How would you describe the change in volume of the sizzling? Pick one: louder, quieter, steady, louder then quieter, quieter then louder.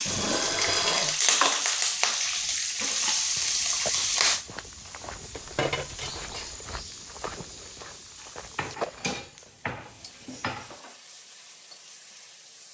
quieter.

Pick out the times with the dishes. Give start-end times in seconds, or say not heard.
0.1-1.2, 5.3-6.5, 8.6-10.8.